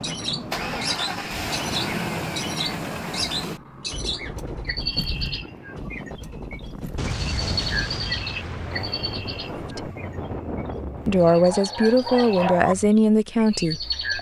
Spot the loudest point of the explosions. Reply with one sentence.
The loudest moment of the explosions is at 7 seconds.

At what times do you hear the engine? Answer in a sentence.
The engine can be heard from 0.0 to 14.1 s.